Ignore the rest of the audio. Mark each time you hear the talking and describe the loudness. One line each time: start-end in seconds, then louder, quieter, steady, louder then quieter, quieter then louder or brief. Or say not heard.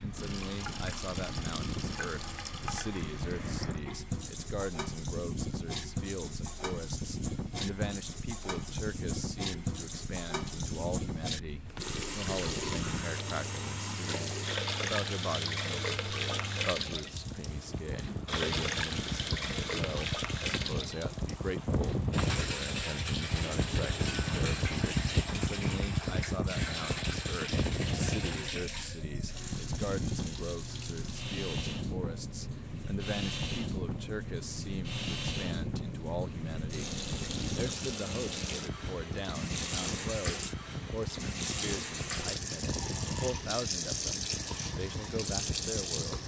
0.0-46.2 steady.